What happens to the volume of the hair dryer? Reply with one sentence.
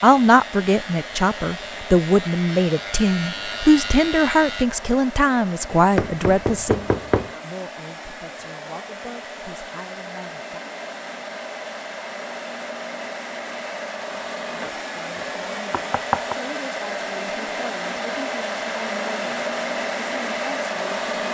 The volume of the hair dryer goes up.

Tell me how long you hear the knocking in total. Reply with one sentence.
The knocking can be heard for 3 seconds in total.